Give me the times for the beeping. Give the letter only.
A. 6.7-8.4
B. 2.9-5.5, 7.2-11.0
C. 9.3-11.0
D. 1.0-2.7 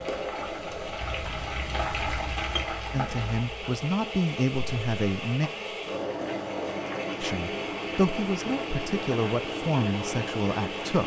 D.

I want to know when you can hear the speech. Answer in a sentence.
You can hear the speech from 2.9 to 5.5 s and from 7.2 to 11.0 s.